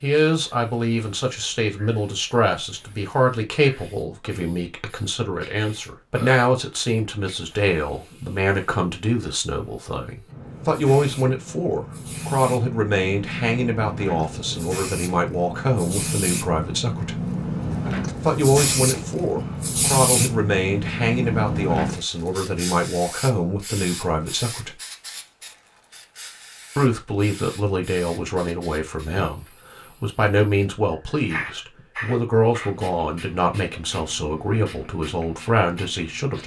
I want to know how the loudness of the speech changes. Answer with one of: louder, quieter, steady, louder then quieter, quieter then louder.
steady.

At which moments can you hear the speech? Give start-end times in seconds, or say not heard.
0.0-17.2, 18.2-24.8, 26.8-36.4.